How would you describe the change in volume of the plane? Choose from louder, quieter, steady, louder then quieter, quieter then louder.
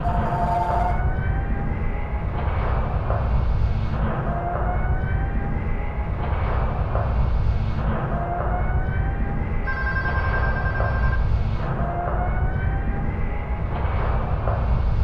steady.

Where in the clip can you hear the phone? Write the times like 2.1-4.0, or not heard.
0.0-1.0, 9.7-11.2.